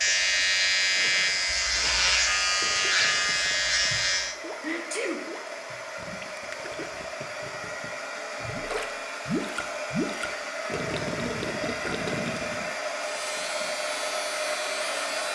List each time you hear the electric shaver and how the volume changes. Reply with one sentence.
You can hear the electric shaver from 0.0 to 4.3 s, at a steady volume; and briefly from 13.0 to 15.3 s.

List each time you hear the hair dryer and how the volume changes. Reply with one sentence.
You can hear the hair dryer from 0.0 to 15.3 s, getting louder.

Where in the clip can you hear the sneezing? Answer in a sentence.
You can hear the sneezing from 3.9 to 5.8 s.